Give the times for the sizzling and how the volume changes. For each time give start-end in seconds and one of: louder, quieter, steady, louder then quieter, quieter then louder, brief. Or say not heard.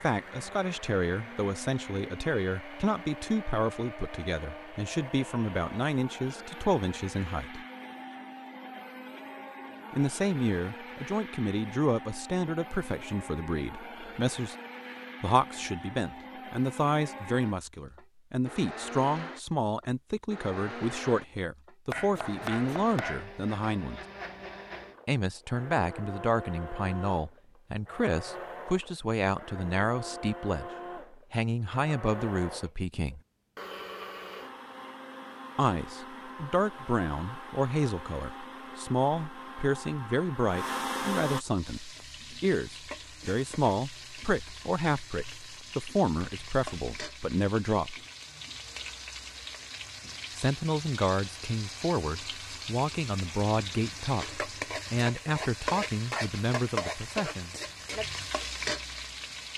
41.4-59.5 louder.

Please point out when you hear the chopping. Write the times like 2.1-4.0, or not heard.
21.9-23.4.